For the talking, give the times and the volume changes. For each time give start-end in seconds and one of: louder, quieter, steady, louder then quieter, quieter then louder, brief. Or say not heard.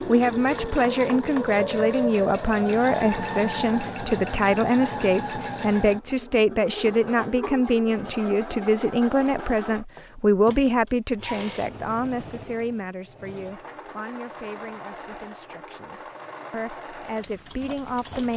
0.1-18.3 quieter.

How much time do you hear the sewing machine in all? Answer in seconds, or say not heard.
18 s.